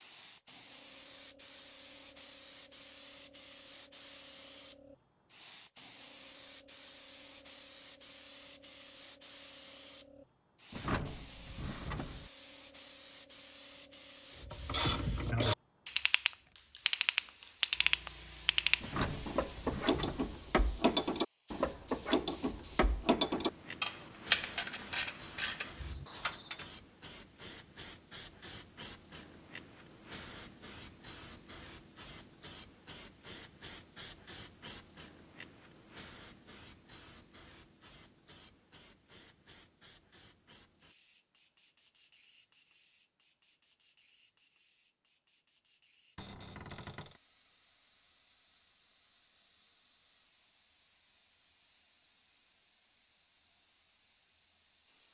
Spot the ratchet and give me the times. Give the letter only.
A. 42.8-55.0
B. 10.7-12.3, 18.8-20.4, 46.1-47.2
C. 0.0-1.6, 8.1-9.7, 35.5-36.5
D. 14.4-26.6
D.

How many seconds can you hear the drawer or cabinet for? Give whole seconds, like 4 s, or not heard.
4 s.